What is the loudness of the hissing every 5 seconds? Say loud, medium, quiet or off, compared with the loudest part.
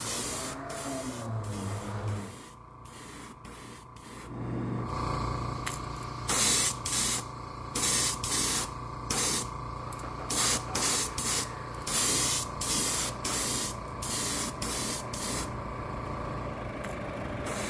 medium, loud, loud, medium.